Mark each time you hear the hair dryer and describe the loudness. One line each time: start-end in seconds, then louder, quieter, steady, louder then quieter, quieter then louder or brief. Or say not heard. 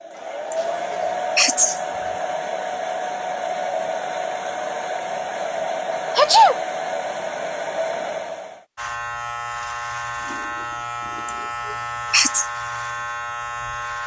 0.0-8.7 steady.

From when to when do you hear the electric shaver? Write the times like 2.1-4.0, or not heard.
8.8-14.0.